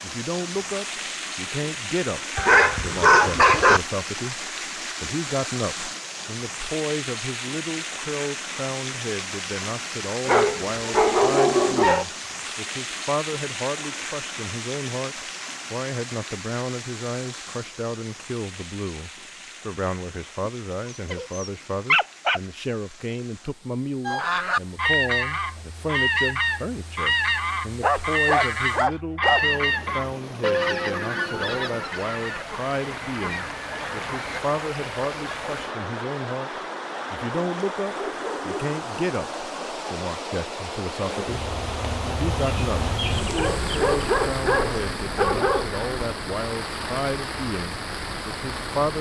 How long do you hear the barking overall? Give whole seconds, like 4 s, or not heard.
10 s.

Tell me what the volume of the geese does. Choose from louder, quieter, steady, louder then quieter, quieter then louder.
quieter.